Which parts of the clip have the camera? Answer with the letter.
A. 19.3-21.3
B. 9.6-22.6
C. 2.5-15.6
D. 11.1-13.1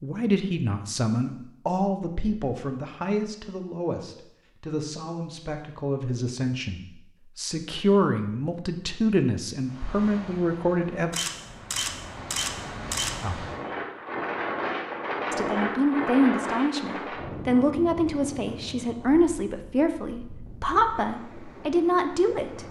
D.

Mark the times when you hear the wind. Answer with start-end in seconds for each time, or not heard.
9.6-22.6.